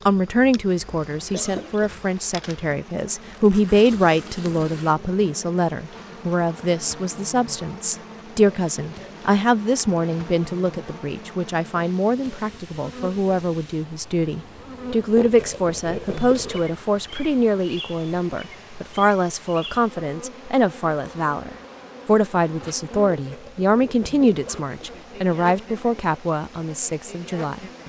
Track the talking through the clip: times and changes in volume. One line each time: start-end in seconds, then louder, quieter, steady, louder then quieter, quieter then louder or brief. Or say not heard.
0.1-27.8 steady.